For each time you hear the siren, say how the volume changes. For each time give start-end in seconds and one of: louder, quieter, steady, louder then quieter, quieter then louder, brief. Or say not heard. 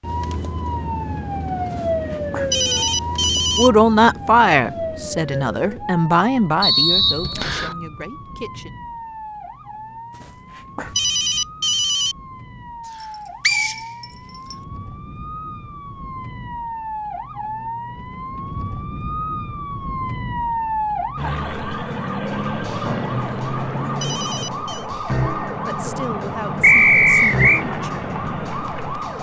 0.0-29.1 quieter then louder.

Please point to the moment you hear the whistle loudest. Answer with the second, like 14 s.
27 s.